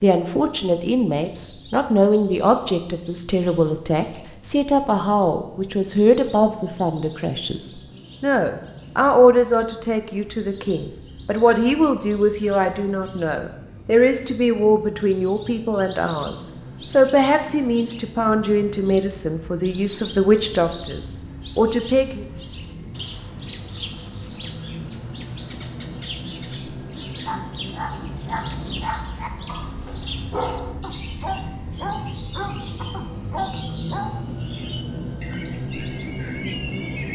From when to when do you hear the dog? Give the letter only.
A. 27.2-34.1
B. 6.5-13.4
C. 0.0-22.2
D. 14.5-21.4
A.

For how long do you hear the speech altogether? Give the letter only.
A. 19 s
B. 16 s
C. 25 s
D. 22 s
D.